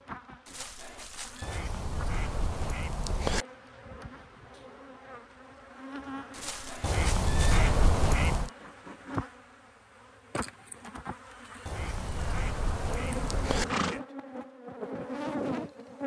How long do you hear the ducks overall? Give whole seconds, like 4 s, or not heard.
6 s.